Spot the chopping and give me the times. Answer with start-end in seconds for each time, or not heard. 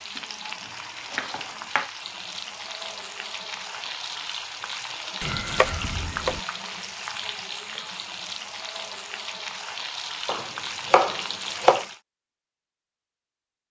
1.1-1.9, 5.2-6.4, 10.2-11.8.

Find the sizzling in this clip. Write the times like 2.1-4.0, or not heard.
0.0-12.0.